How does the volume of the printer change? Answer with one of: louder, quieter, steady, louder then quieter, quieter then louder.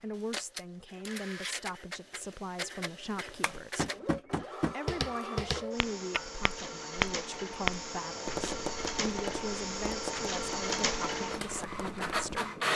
louder.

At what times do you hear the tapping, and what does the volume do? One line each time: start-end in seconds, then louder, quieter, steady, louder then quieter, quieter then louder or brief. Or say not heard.
3.4-12.4 quieter.